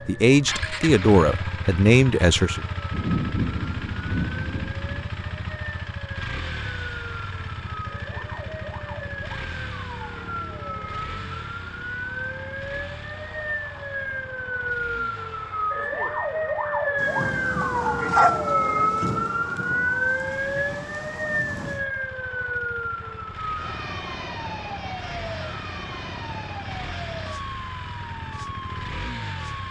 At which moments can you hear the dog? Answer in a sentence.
The dog can be heard from 17.6 to 19.1 s.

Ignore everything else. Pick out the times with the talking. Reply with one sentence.
The talking can be heard from 0.1 to 2.6 s.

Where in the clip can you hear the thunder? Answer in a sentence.
You can hear the thunder from 2.9 to 5.5 s and from 16.9 to 21.9 s.